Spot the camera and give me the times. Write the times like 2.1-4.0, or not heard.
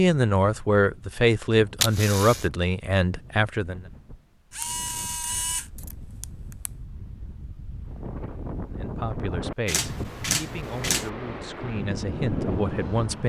1.8-2.5, 4.5-6.7, 9.7-11.1.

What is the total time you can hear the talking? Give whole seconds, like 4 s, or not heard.
8 s.